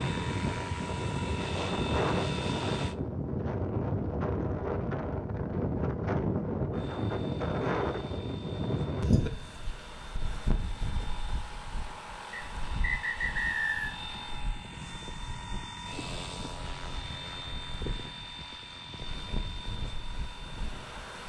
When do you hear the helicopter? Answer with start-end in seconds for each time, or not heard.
0.0-3.0, 6.7-21.2.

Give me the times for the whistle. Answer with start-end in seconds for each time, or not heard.
12.3-13.9.